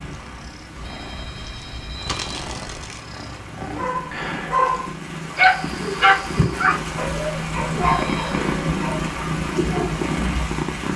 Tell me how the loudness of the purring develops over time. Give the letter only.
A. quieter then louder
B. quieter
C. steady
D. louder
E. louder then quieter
D.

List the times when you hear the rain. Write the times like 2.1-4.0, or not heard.
0.0-10.9.